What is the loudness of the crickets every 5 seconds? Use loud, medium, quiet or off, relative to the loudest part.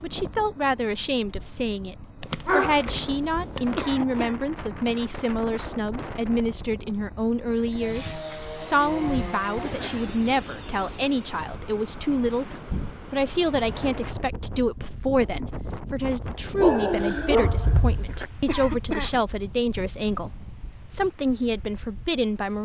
loud, loud, loud, off, off.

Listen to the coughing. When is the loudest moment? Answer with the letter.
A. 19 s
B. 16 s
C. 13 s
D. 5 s
A.